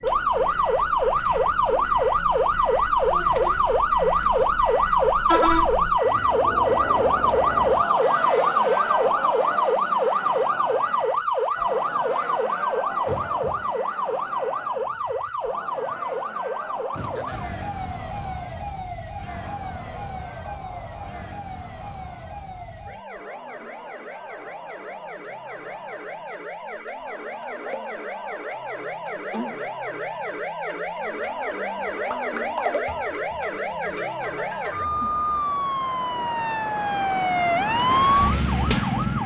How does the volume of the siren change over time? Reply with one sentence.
The loudness of the siren goes down, then up.